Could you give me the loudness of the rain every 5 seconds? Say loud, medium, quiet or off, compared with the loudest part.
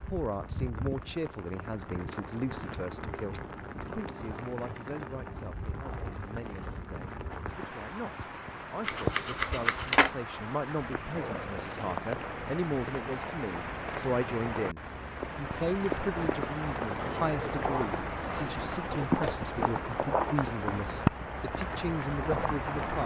medium, medium, medium, loud, loud.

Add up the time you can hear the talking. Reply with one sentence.
You can hear the talking for 23 seconds altogether.